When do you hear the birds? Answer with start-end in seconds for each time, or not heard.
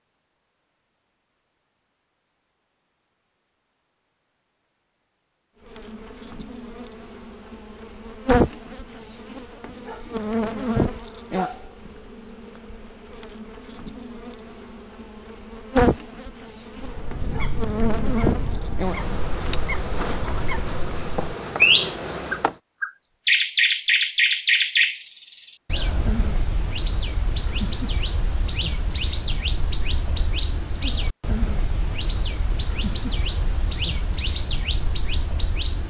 16.8-35.8.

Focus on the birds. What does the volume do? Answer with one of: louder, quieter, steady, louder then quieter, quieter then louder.
louder then quieter.